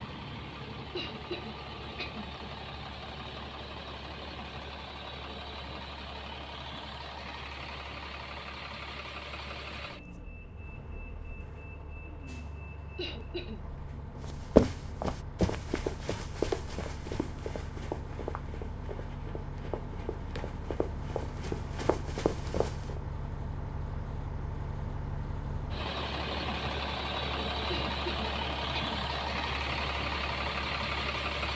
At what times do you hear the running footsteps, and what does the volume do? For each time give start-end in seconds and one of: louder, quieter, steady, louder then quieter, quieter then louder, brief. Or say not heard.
14.2-23.0 quieter then louder.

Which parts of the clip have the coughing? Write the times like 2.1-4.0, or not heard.
0.9-2.3, 12.9-13.6, 27.6-29.0.